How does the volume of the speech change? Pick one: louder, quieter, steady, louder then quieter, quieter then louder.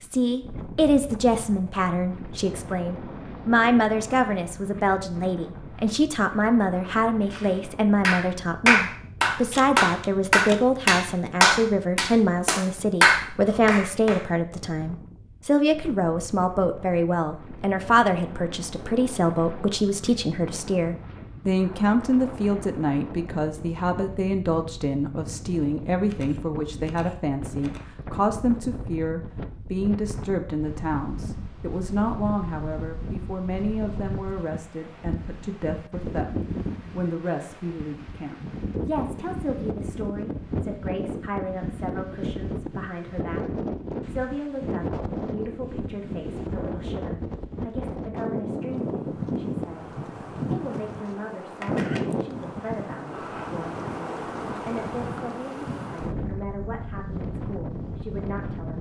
quieter.